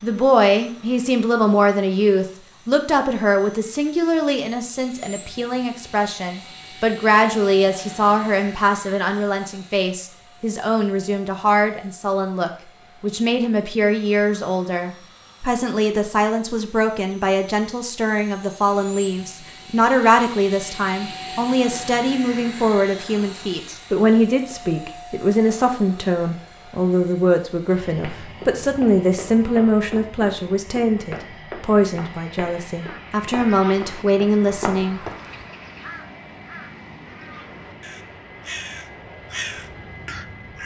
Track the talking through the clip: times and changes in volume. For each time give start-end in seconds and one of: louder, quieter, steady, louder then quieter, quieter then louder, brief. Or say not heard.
0.0-35.0 steady.